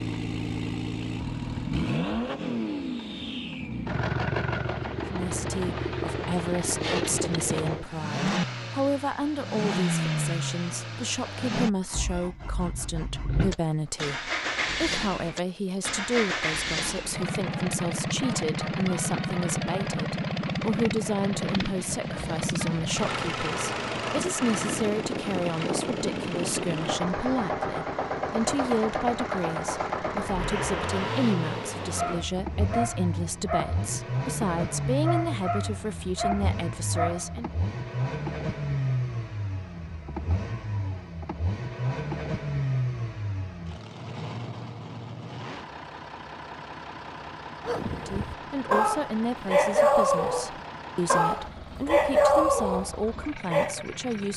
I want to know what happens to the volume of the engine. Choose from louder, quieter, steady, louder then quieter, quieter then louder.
quieter.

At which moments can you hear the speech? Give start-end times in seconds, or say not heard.
5.1-37.5, 47.9-54.3.